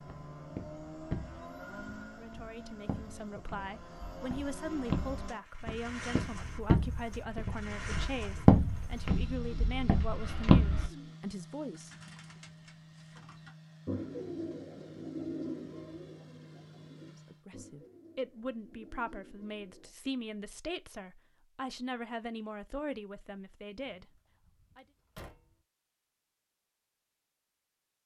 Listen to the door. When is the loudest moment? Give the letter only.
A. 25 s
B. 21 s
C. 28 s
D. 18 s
A.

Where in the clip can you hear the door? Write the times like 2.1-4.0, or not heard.
23.8-25.6.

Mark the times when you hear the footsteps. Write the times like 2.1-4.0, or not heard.
0.0-10.9.